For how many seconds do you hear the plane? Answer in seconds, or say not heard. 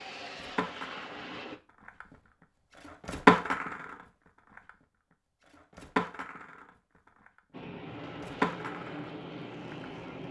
4 s.